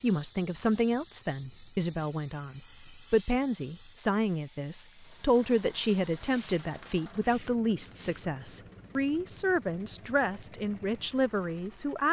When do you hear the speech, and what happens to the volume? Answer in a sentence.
You can hear the speech from 0.0 to 12.0 s, at a steady volume.